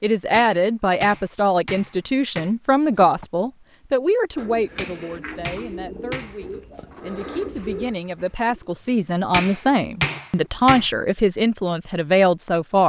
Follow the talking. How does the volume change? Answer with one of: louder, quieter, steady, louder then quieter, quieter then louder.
quieter then louder.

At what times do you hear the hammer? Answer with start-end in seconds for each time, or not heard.
0.3-2.5, 4.8-6.4, 9.3-10.8.